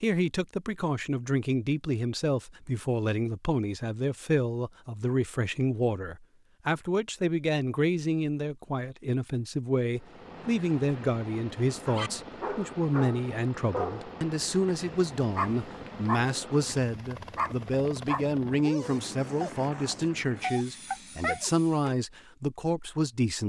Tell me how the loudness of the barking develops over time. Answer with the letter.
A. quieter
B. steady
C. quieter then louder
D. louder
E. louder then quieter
B.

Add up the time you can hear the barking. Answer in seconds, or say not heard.
10 s.